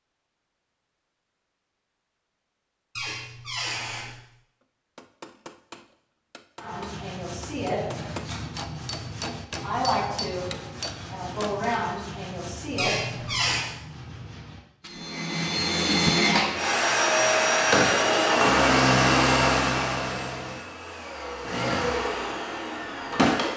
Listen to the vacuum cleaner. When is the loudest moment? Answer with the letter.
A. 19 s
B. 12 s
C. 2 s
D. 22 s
A.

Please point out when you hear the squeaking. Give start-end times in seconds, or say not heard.
3.0-4.2, 12.8-13.8.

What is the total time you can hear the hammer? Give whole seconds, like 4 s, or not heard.
7 s.